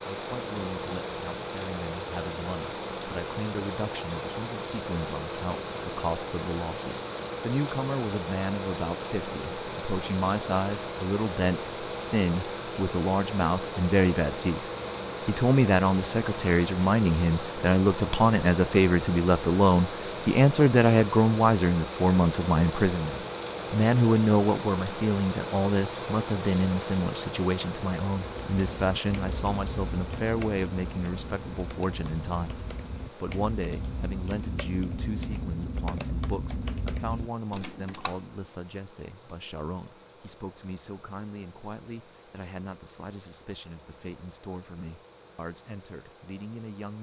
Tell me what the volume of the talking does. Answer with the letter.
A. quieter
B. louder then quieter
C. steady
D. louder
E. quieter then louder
B.